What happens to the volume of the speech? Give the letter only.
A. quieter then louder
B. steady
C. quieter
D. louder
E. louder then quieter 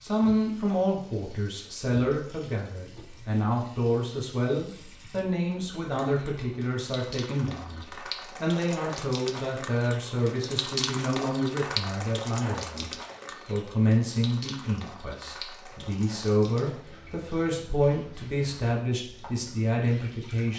B.